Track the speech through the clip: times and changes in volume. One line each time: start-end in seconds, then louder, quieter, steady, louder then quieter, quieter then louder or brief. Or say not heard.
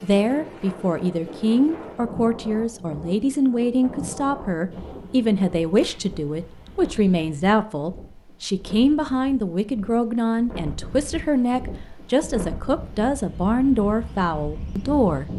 0.0-15.3 steady.